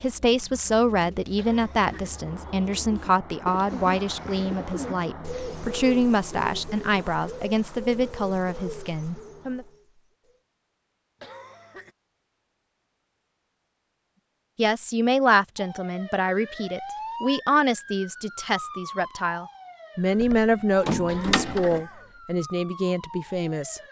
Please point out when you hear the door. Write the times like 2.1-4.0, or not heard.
20.2-21.8.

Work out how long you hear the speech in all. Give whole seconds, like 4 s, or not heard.
19 s.